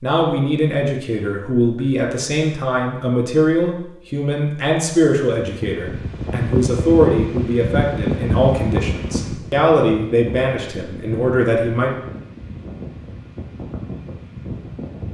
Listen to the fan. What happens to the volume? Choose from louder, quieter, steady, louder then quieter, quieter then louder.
quieter.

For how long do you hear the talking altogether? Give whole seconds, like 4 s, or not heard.
12 s.